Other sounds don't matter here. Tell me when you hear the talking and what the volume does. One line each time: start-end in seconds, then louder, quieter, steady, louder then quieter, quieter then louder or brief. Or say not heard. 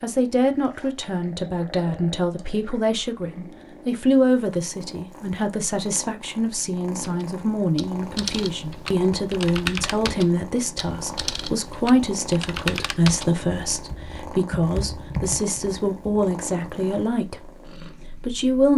0.0-17.5 steady
18.1-18.7 brief.